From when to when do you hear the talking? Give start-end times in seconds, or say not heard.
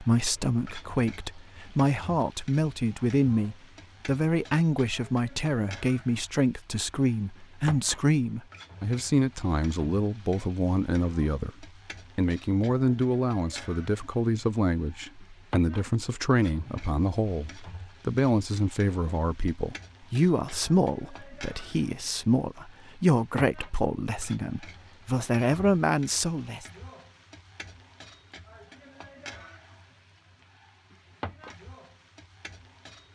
0.0-26.6.